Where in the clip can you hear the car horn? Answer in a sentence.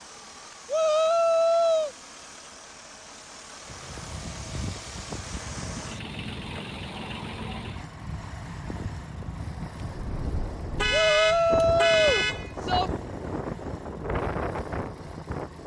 The car horn can be heard from 10.8 to 12.6 s.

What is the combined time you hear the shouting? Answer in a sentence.
You can hear the shouting for 3 seconds altogether.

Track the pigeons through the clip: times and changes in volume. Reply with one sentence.
You can't hear the pigeons here.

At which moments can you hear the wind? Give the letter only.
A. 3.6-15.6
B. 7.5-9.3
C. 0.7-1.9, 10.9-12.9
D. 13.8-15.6
A.